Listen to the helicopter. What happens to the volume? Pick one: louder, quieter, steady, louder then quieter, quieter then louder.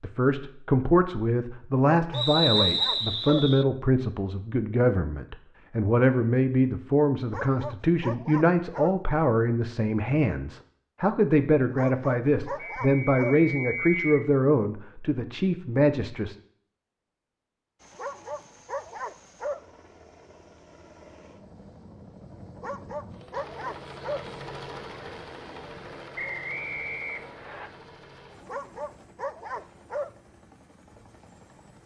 louder then quieter.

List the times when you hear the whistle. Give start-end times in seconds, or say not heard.
2.1-3.6, 12.6-14.2, 26.1-27.7.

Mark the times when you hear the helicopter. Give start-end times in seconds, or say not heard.
17.8-31.8.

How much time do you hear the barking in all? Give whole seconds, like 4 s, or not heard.
10 s.